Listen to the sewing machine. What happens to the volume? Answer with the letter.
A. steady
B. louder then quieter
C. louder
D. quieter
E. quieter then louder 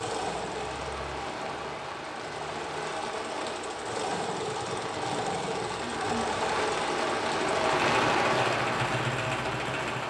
C.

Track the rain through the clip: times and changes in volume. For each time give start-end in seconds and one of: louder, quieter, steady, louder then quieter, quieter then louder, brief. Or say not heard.
0.0-10.0 louder.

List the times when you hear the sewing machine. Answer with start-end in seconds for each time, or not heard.
0.0-10.0.